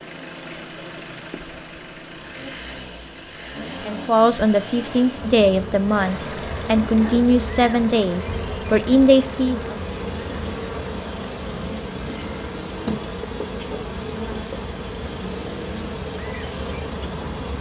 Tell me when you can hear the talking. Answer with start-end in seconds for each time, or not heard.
3.9-9.8.